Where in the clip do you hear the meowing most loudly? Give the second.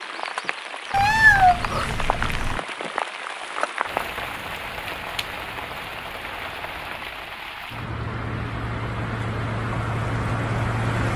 1 s.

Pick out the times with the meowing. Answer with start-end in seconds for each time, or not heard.
0.9-2.6.